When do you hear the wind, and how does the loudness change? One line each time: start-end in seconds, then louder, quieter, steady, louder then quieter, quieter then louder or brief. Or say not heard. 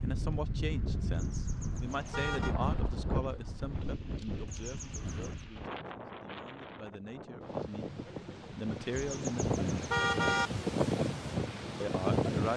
0.0-12.5 quieter then louder.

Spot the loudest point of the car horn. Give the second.
10 s.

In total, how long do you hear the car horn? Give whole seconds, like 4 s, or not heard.
4 s.